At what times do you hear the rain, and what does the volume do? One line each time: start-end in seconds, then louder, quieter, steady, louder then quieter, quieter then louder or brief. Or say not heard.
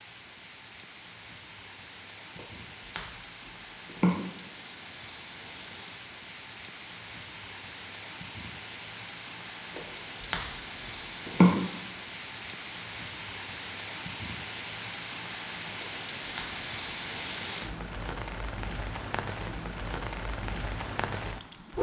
0.0-21.7 louder.